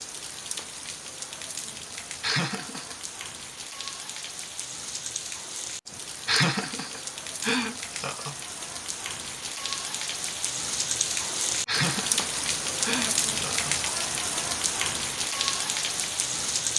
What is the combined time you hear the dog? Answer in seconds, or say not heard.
not heard.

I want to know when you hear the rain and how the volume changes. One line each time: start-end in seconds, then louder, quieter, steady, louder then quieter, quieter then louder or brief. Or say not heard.
0.0-16.7 louder.